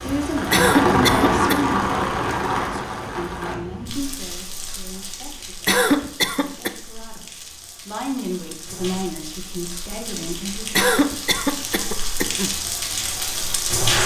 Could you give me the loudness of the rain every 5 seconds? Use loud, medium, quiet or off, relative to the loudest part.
loud, quiet, loud.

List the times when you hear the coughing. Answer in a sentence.
You can hear the coughing from 0.5 to 1.6 s, from 5.7 to 6.7 s and from 10.8 to 12.5 s.